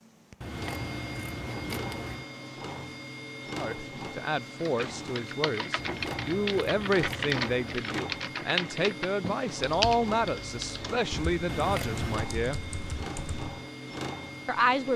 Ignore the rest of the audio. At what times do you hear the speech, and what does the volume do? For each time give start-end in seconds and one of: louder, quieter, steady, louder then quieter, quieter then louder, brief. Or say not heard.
3.5-12.6 steady
14.4-14.9 brief.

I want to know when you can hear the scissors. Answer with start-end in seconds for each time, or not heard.
0.4-2.3, 5.8-7.8, 11.4-12.3.